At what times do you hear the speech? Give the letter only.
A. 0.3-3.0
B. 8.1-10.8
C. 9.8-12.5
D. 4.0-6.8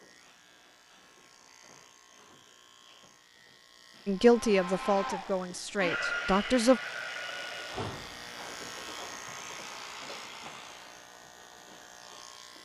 D.